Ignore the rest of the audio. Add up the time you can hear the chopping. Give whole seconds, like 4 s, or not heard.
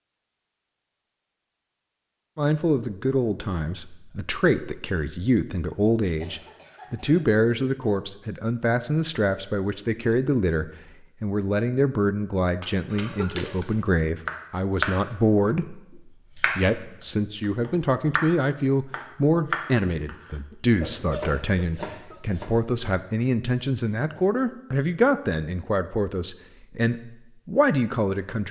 8 s.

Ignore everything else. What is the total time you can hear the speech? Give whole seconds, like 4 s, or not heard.
26 s.